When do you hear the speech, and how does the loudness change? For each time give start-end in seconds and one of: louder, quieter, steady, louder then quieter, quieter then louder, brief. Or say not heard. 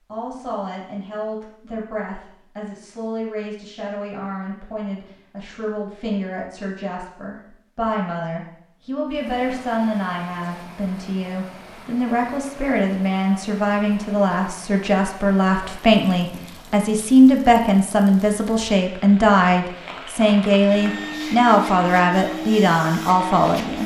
0.1-23.8 louder.